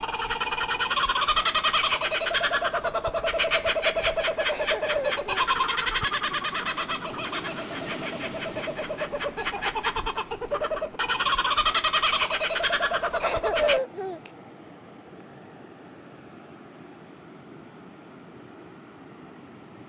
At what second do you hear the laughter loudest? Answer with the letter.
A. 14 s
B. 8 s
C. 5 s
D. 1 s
A.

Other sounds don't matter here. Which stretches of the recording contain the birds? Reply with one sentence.
The birds can be heard from 0.0 to 13.8 s.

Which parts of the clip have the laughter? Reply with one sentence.
You can hear the laughter from 4.5 to 5.3 s and from 13.2 to 14.3 s.